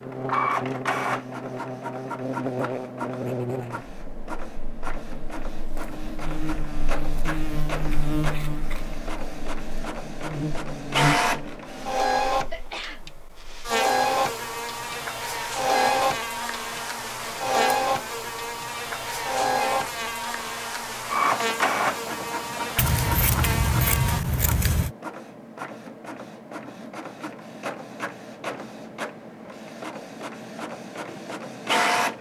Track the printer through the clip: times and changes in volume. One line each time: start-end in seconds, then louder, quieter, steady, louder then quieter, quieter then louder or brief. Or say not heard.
0.0-32.1 louder then quieter.